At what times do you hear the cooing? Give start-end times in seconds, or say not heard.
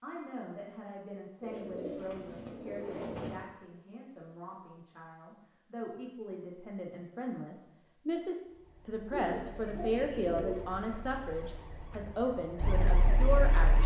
1.4-3.4, 9.1-10.7.